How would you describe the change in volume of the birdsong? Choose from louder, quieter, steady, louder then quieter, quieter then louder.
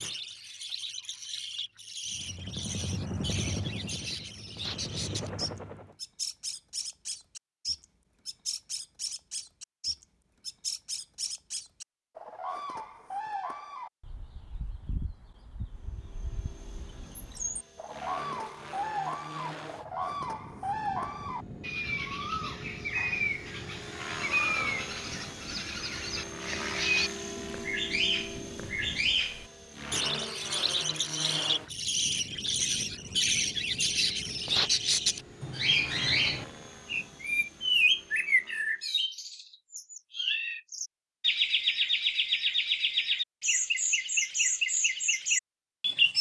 louder.